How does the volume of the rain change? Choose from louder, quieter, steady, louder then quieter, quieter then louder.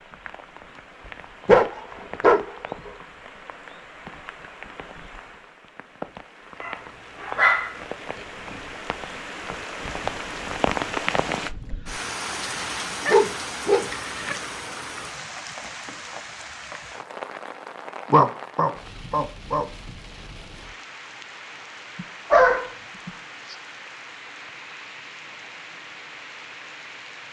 louder then quieter.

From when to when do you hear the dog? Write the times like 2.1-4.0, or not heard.
1.4-2.9, 6.6-7.8, 12.5-14.3, 18.1-19.6, 21.9-23.6.